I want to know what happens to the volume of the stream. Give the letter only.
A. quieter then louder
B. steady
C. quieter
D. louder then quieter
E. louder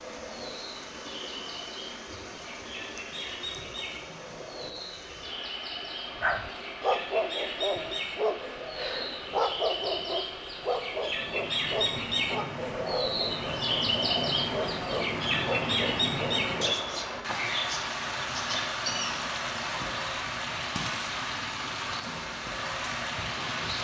E.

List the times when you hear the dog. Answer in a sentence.
You can hear the dog from 6.2 to 16.8 s.